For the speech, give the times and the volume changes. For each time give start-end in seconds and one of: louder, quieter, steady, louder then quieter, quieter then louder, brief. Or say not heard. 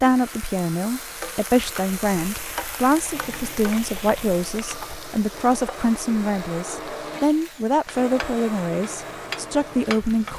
0.0-10.3 steady.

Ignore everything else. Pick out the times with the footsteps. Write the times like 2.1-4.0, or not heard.
not heard.